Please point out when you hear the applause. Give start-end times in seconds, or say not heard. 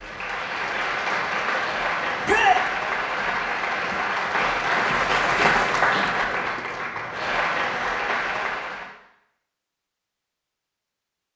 0.0-8.9.